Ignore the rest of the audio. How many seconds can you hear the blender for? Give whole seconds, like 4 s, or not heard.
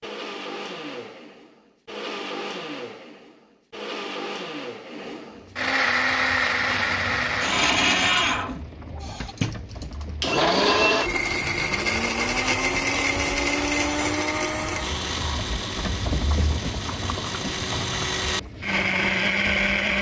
20 s.